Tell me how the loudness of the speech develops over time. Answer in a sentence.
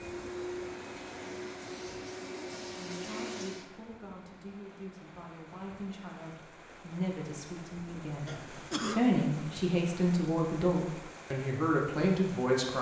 The volume of the speech goes up.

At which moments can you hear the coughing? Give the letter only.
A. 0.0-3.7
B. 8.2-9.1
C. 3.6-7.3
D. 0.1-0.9
B.